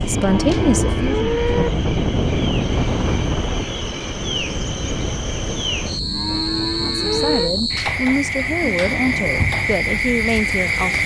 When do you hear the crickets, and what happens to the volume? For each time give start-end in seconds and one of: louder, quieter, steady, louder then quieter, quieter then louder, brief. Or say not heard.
0.0-11.0 louder.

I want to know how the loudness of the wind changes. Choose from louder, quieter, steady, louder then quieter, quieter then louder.
quieter.